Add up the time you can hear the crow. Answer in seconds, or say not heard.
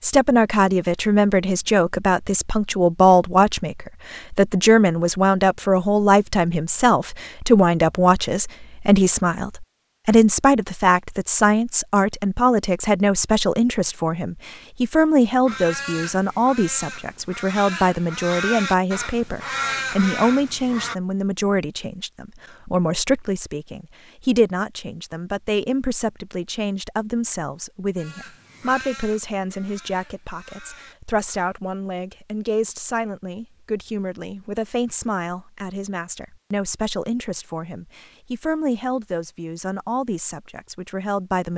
9 s.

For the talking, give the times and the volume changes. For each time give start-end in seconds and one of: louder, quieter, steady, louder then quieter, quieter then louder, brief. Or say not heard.
0.0-41.5 quieter.